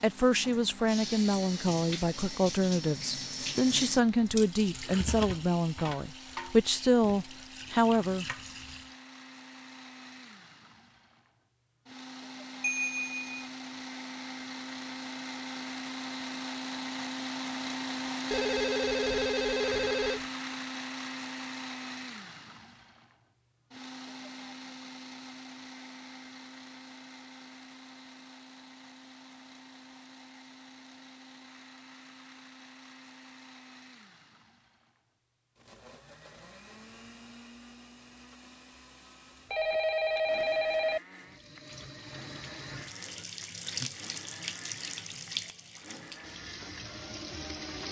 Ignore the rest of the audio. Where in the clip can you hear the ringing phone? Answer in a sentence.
The ringing phone can be heard from 12.6 to 13.2 s, from 18.3 to 20.2 s and from 39.5 to 41.0 s.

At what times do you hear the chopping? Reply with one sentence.
You can't hear the chopping here.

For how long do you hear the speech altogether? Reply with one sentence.
You can hear the speech for 8 seconds altogether.